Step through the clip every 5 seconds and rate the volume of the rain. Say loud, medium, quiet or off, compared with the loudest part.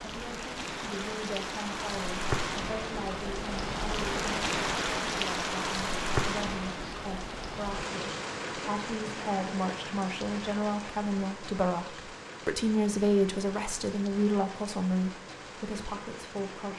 loud, loud, medium, medium.